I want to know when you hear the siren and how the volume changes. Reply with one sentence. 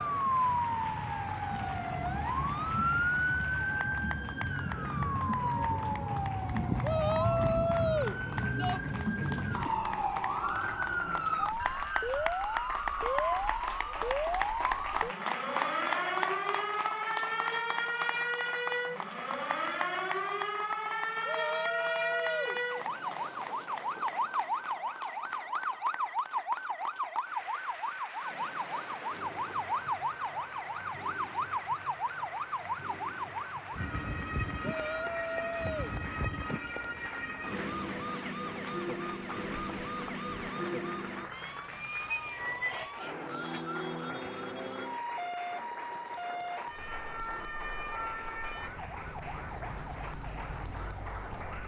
You can hear the siren from 0.0 to 51.6 s, getting quieter.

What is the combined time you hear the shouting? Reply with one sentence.
The shouting can be heard for 5 seconds in total.